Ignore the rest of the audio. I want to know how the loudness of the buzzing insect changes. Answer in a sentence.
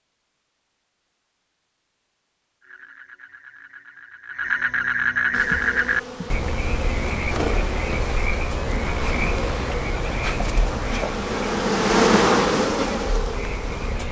The volume of the buzzing insect goes up.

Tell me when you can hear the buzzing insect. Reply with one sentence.
The buzzing insect can be heard from 5.3 to 14.0 s.